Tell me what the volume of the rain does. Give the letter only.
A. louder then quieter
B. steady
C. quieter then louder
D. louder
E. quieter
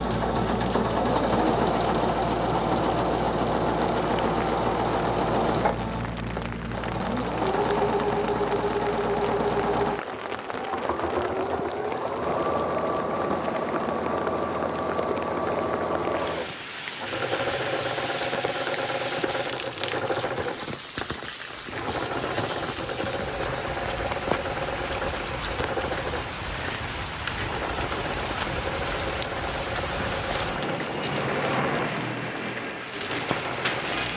D.